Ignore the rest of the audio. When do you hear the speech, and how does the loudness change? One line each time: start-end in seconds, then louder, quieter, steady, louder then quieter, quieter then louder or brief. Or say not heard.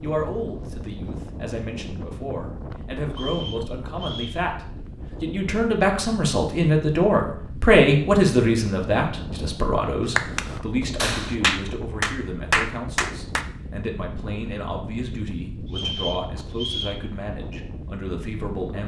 0.0-18.8 louder then quieter.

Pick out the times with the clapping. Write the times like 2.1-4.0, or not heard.
10.2-13.4.